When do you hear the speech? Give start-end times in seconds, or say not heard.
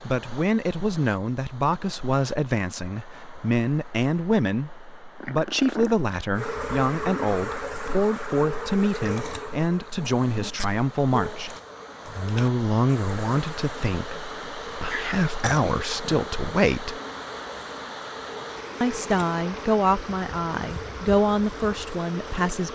0.0-17.0, 18.8-22.7.